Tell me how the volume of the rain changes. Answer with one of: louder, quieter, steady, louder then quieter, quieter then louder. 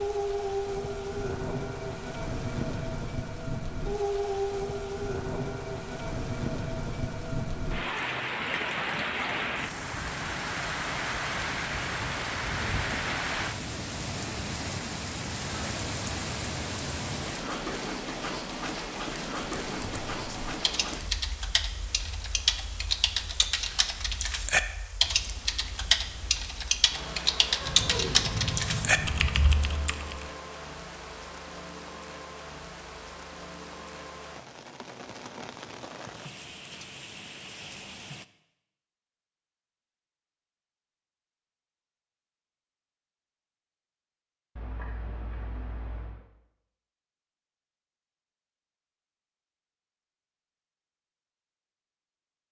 quieter.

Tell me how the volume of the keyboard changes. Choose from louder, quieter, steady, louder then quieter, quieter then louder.
louder.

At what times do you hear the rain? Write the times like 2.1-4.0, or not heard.
0.0-38.2.